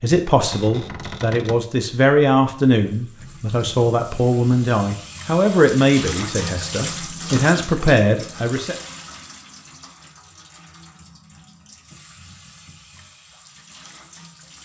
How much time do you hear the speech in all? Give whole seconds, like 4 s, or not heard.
9 s.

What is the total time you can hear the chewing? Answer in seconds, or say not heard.
not heard.